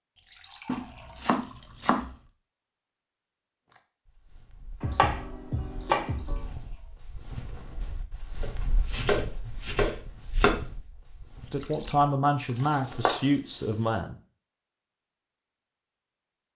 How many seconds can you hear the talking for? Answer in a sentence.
The talking can be heard for 3 seconds in total.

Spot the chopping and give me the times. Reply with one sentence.
The chopping can be heard from 0.7 to 2.1 s, from 4.8 to 6.5 s, from 8.4 to 10.6 s and from 12.6 to 13.9 s.